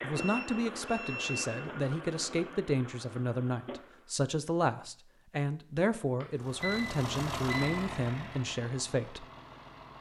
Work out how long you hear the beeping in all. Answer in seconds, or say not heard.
3 s.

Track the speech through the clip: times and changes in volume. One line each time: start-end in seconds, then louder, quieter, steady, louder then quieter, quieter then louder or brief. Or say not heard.
0.0-9.2 steady.